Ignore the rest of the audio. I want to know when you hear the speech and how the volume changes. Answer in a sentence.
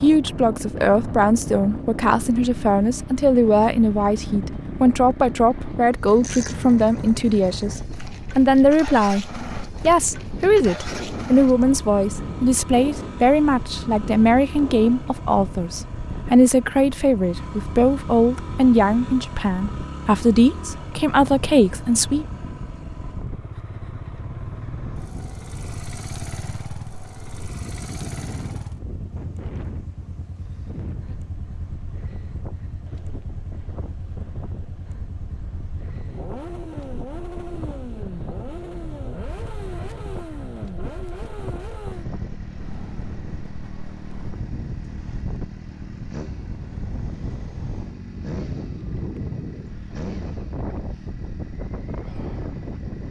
You can hear the speech from 0.0 to 22.2 s, at a steady volume.